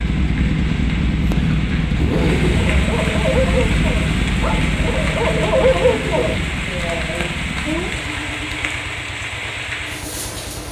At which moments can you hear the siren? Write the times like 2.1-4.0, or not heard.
not heard.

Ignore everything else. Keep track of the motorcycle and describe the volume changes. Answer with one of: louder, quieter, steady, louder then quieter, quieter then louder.
quieter.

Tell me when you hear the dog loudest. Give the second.
6 s.